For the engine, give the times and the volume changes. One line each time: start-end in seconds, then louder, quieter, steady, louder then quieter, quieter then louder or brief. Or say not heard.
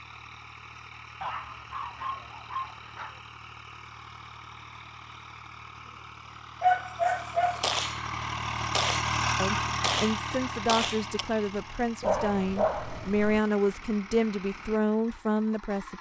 0.0-15.9 louder then quieter.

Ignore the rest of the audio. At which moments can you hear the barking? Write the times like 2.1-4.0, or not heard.
1.2-3.2, 6.6-7.7, 12.0-13.4.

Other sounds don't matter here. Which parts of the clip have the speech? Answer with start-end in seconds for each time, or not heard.
9.4-15.9.